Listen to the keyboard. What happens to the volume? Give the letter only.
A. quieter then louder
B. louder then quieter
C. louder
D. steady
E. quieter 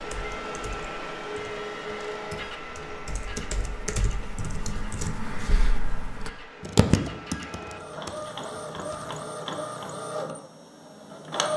B.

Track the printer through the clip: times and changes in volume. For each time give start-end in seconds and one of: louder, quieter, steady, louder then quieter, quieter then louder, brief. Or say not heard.
0.0-11.5 quieter then louder.